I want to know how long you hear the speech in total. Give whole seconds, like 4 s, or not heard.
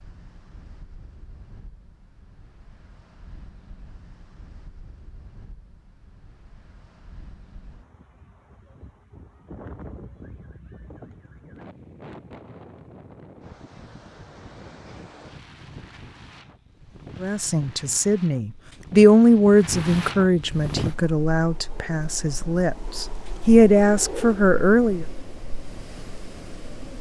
8 s.